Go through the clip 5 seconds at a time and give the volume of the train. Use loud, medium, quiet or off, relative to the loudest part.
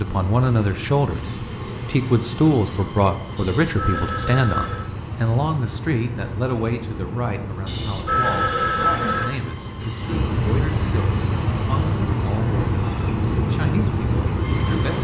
medium, medium, loud.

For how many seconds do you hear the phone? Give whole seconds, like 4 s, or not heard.
3 s.